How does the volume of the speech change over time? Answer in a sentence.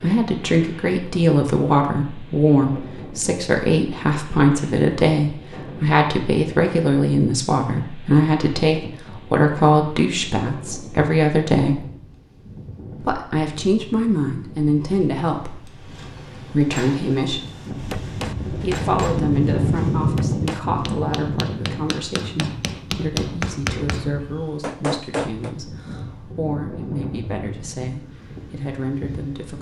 The loudness of the speech goes down.